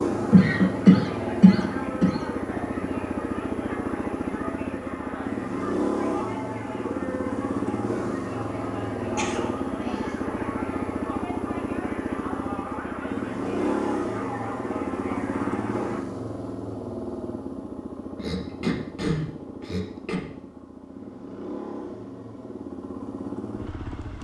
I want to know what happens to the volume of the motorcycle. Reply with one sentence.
The loudness of the motorcycle goes down.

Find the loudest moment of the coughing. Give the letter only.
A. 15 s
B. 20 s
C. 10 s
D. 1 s
D.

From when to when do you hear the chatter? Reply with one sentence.
You can hear the chatter from 0.0 to 16.0 s.